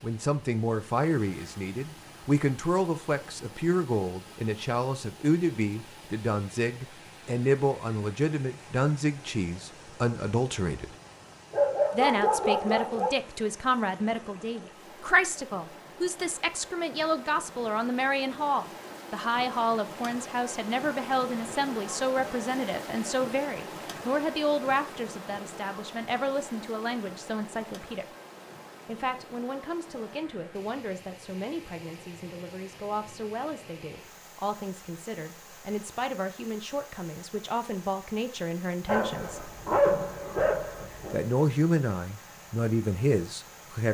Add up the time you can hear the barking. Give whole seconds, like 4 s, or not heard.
4 s.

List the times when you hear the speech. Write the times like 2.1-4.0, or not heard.
0.0-10.9, 11.9-28.1, 28.9-39.5, 41.1-43.9.